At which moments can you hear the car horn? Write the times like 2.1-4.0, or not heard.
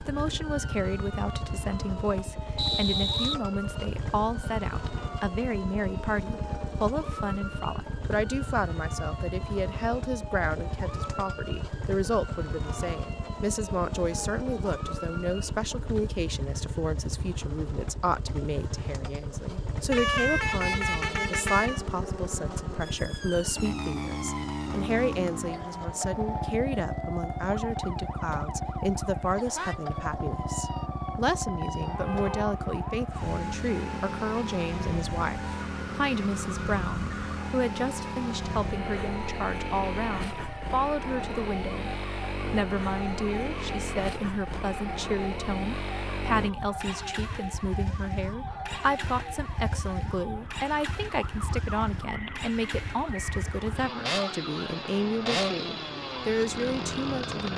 19.9-21.9, 31.9-32.5.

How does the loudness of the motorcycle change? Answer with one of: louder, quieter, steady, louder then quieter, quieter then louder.
steady.